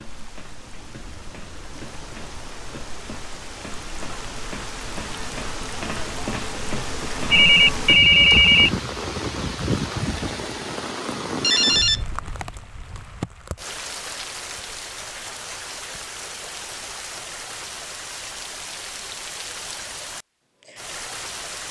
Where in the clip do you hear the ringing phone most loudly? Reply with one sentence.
The volume of the ringing phone peaks at 8 seconds.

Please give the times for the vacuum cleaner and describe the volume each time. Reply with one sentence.
The vacuum cleaner can't be heard in this clip.